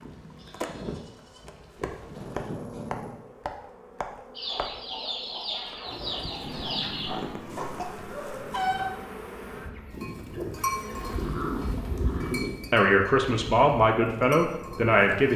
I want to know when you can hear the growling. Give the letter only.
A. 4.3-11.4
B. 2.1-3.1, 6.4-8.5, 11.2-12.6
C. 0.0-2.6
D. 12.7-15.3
B.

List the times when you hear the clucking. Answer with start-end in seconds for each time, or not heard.
4.3-11.4.